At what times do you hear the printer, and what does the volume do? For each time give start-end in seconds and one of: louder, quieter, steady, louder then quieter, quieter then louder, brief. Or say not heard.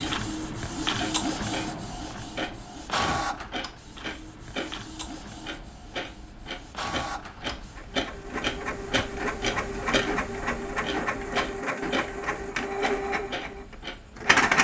0.0-14.5 quieter then louder.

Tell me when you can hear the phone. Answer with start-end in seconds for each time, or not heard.
not heard.